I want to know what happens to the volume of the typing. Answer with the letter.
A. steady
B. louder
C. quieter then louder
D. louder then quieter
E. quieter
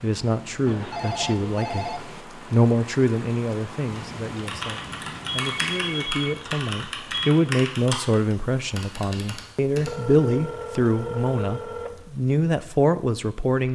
E.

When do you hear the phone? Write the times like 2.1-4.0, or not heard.
0.7-2.1, 5.5-7.3, 9.8-12.1.